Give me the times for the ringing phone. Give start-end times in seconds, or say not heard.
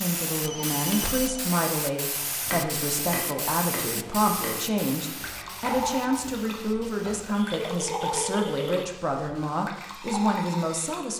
0.4-1.4, 7.3-8.8.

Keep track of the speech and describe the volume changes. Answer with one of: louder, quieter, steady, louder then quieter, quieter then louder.
steady.